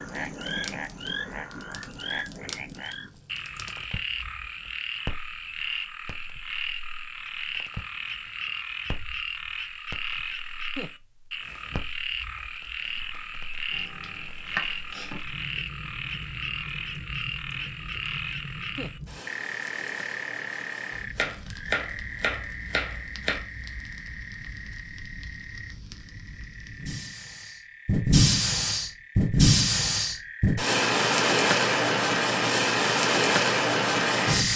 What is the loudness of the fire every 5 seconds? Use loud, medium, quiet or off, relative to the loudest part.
quiet, quiet, quiet, quiet, quiet, loud, loud.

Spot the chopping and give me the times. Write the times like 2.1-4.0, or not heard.
13.7-15.2, 21.1-23.4.